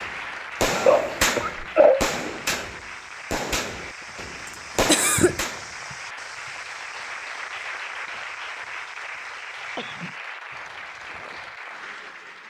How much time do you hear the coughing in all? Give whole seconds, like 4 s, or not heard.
2 s.